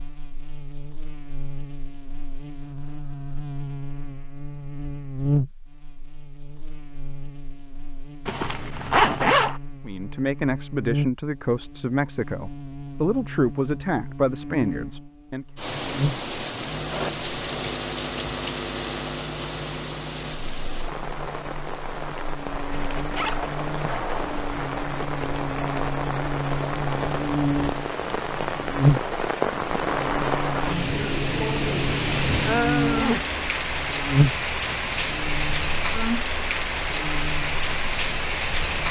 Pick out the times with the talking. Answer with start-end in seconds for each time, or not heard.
9.8-15.4.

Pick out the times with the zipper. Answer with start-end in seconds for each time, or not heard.
8.2-9.6, 22.7-24.4, 32.9-33.4.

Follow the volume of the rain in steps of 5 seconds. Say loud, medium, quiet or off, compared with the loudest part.
off, off, off, medium, medium, loud, loud, loud.